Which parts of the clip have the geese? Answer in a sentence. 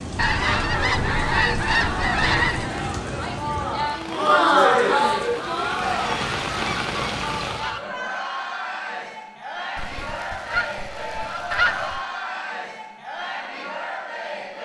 The geese can be heard from 0.1 to 2.8 s, from 5.9 to 7.8 s and from 9.8 to 12.1 s.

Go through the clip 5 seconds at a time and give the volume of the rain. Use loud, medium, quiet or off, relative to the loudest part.
loud, loud, off.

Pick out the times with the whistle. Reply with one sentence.
You can't hear the whistle here.